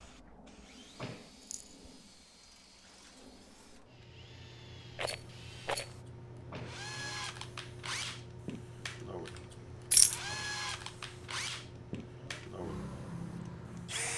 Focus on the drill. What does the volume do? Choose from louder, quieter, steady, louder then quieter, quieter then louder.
louder.